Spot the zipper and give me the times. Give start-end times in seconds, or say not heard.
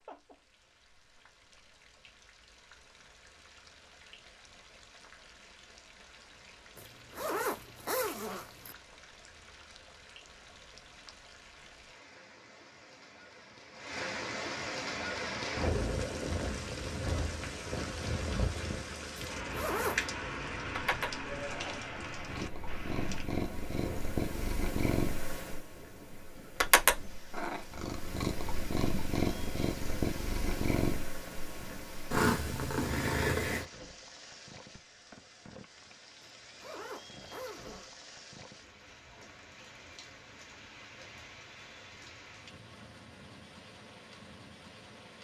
6.8-8.8, 19.4-20.1, 36.2-37.9.